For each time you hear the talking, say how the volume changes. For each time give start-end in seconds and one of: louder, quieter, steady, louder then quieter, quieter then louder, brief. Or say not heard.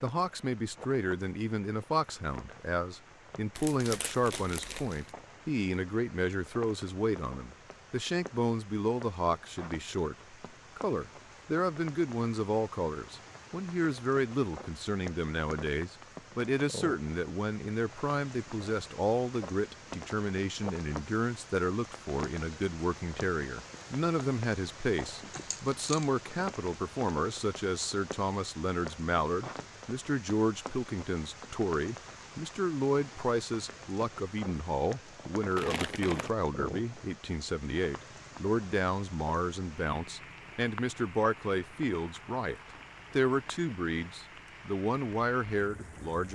0.0-46.3 steady.